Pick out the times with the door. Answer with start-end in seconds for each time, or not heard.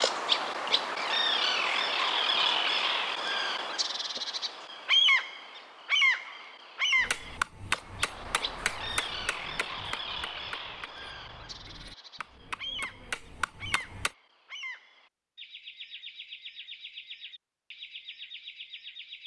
not heard.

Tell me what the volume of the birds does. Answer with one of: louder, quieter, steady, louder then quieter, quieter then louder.
quieter.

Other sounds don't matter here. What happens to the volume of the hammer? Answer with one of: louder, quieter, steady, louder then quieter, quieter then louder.
quieter then louder.